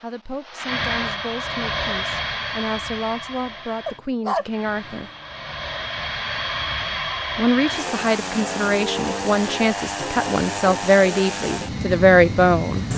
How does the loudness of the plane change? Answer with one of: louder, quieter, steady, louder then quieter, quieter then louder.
quieter then louder.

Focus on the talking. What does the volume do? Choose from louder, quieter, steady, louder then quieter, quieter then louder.
louder.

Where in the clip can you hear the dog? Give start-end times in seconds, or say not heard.
3.9-5.1.